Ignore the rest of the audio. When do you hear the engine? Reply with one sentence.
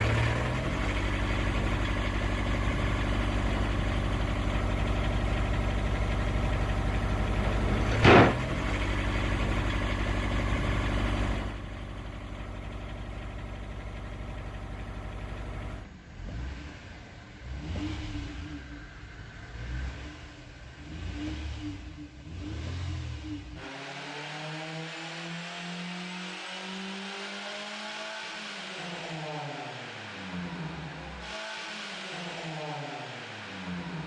The engine can be heard from 0.0 to 34.0 s.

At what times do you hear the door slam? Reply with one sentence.
The door slam can be heard from 7.2 to 8.3 s.